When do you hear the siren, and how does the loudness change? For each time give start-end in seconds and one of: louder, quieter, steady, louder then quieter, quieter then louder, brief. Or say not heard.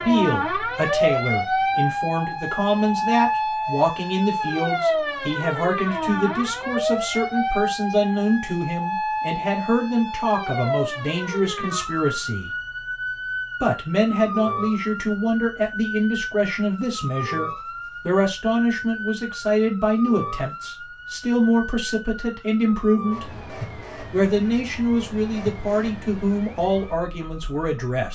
0.0-28.0 quieter.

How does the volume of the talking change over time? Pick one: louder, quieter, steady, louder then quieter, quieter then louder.
steady.